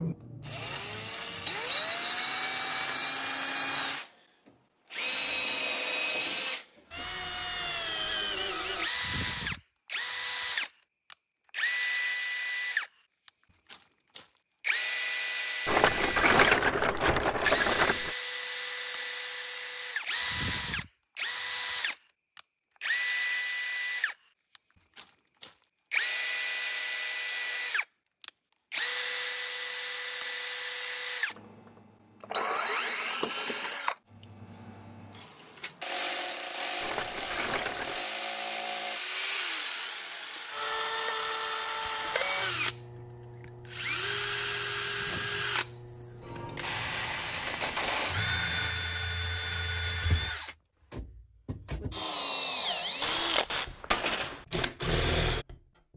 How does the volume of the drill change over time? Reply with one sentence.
The loudness of the drill stays about the same.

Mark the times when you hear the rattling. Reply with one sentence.
You can hear the rattling from 15.7 to 18.1 s and from 36.8 to 38.0 s.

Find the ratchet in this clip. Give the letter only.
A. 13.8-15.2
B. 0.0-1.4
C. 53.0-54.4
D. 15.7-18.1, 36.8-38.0
C.